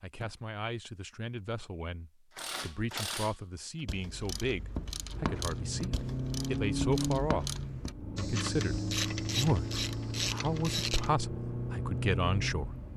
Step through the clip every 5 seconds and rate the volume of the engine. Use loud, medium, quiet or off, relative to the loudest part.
off, loud, loud.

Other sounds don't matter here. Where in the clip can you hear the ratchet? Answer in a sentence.
The ratchet can be heard from 2.4 to 11.2 s.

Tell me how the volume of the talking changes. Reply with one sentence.
The loudness of the talking goes up.